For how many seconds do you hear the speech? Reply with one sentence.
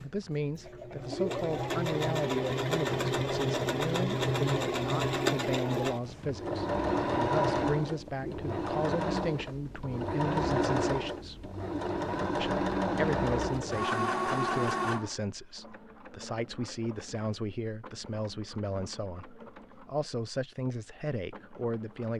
You can hear the speech for 21 seconds altogether.